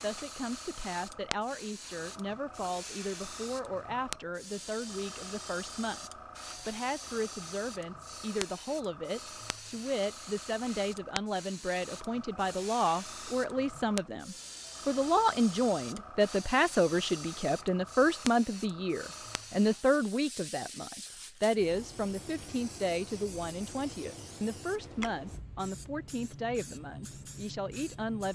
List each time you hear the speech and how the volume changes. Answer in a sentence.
You can hear the speech from 0.0 to 28.3 s, getting louder then quieter.